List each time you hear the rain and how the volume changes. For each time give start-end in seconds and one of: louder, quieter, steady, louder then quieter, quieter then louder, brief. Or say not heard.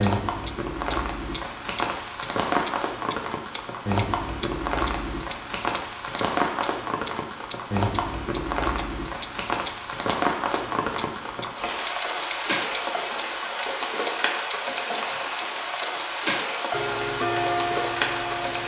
0.0-18.6 steady.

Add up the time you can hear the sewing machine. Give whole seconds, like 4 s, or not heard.
not heard.